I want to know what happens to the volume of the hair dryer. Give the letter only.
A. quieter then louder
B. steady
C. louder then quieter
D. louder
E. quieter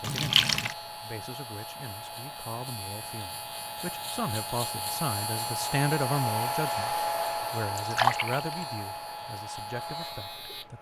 C.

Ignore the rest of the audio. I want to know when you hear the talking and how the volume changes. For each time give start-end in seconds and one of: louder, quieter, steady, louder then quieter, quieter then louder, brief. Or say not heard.
0.0-10.7 louder then quieter.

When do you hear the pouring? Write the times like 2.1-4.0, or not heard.
0.0-0.8, 7.8-8.7.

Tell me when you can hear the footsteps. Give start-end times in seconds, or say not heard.
not heard.